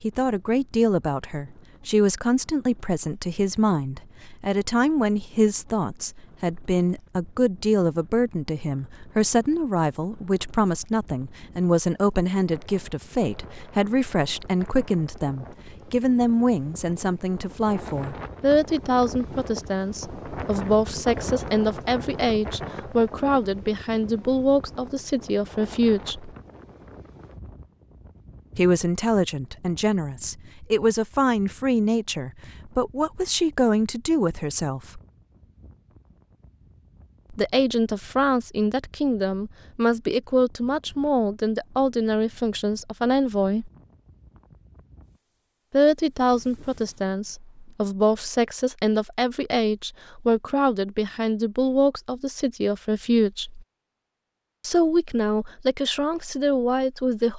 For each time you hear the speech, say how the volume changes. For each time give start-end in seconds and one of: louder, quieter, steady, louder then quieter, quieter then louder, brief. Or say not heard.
0.0-26.3 steady
28.6-35.0 steady
37.3-43.7 steady
45.7-53.6 steady
54.6-57.3 brief.